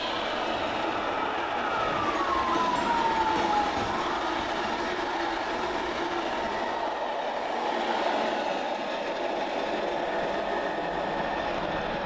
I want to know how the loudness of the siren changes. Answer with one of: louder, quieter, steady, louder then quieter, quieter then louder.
louder then quieter.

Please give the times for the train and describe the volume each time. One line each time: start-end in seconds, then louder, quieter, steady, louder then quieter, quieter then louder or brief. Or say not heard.
0.0-12.0 steady.